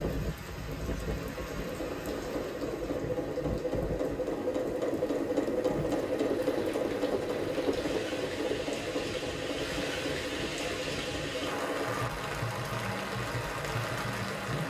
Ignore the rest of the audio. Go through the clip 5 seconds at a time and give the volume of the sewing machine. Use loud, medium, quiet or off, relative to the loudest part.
loud, loud, medium.